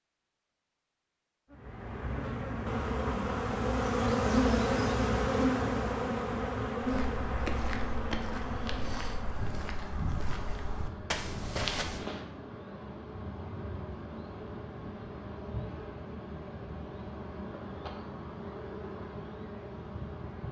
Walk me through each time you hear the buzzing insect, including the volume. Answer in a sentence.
The buzzing insect can be heard from 1.5 to 20.4 s, getting quieter.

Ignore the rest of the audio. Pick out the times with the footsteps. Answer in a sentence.
You can hear the footsteps from 6.8 to 12.1 s.